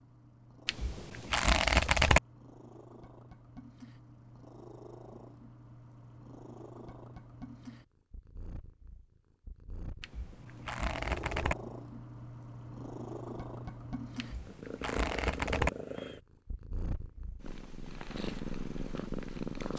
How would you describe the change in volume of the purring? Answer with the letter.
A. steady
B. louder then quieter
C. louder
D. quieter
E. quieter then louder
C.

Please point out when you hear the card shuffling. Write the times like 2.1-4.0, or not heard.
0.7-2.2, 10.0-11.6, 14.2-15.7.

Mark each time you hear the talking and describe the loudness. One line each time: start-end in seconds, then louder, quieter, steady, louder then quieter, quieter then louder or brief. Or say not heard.
not heard.